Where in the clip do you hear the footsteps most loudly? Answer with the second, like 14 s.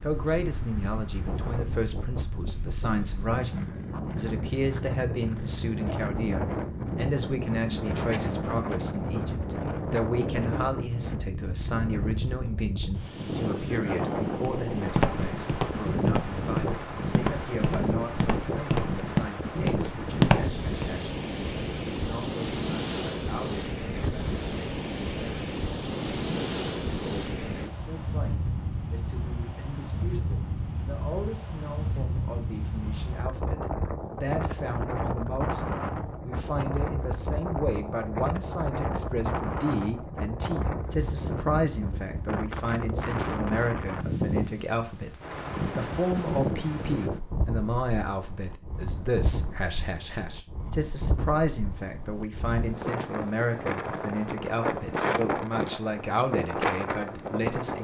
20 s.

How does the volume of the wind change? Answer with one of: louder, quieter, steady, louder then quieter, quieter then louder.
steady.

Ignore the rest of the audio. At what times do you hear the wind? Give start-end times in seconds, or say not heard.
0.0-57.7.